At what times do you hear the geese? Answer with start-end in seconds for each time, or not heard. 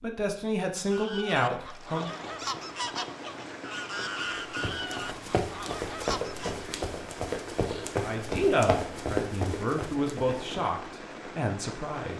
0.9-6.7.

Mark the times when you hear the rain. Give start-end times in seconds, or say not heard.
1.7-12.1.